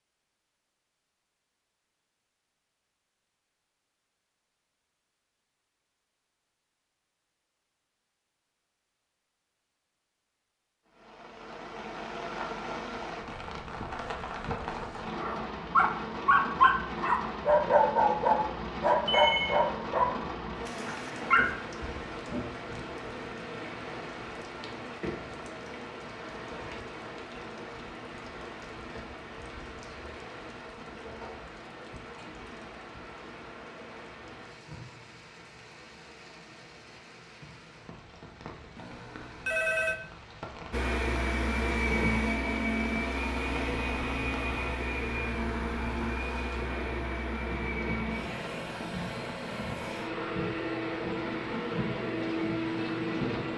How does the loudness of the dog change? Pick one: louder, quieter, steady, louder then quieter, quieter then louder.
quieter.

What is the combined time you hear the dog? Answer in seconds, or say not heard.
6 s.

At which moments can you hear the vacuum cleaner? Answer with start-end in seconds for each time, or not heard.
40.7-53.5.